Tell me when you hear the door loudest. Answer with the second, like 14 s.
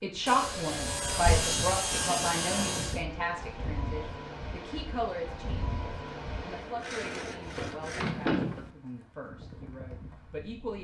8 s.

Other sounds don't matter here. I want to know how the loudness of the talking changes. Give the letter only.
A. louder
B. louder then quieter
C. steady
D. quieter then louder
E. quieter
E.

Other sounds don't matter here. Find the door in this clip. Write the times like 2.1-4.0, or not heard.
1.1-1.5, 8.0-8.7.